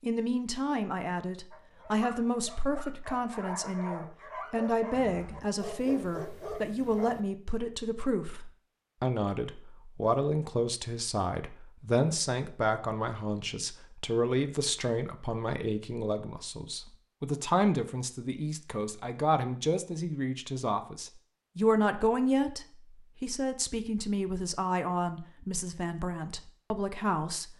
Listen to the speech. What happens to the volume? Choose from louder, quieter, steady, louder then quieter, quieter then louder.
steady.